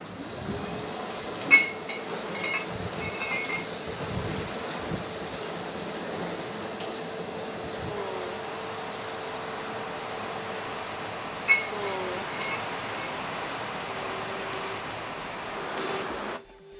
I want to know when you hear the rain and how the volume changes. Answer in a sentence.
The rain can be heard from 0.0 to 16.7 s, at a steady volume.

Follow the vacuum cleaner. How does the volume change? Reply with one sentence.
The volume of the vacuum cleaner stays about the same.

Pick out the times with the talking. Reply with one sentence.
The talking can't be heard in this clip.